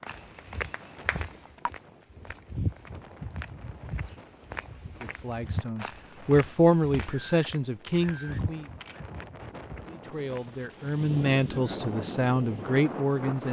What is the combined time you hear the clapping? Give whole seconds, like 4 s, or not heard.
2 s.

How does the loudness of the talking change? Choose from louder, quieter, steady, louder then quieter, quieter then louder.
quieter then louder.